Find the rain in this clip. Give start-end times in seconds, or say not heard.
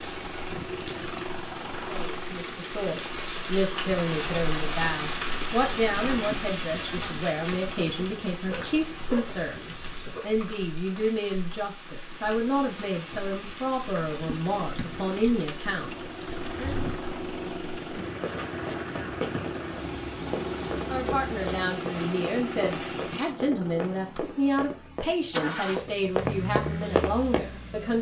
0.0-23.4.